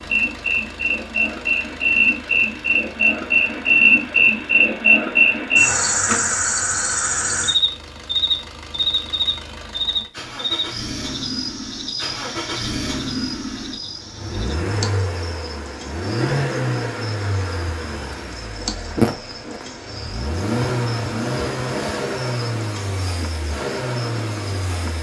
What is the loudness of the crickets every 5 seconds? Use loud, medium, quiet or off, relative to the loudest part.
loud, loud, quiet, quiet, quiet.